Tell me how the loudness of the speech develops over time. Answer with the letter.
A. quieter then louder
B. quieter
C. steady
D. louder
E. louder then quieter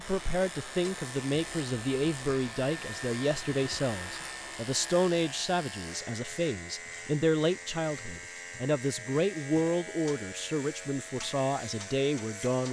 C.